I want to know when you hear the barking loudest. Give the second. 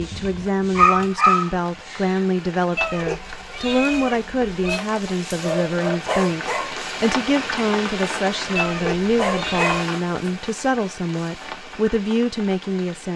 1 s.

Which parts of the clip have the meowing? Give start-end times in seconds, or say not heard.
2.8-4.8, 8.6-9.8.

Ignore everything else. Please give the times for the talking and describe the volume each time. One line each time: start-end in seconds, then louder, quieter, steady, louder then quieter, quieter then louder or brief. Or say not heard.
0.0-13.1 steady.